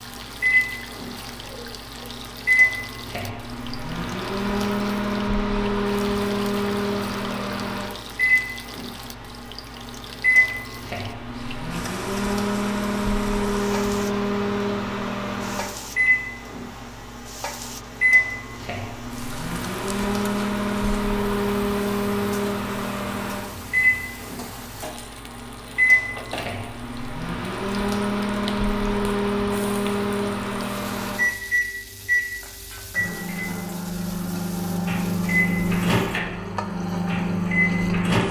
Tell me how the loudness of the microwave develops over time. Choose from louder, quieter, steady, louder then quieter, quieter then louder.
steady.